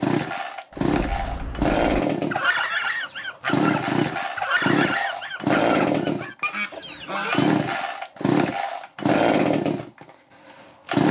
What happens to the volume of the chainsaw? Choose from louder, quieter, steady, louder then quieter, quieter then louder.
steady.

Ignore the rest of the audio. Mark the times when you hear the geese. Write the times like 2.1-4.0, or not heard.
0.8-7.6.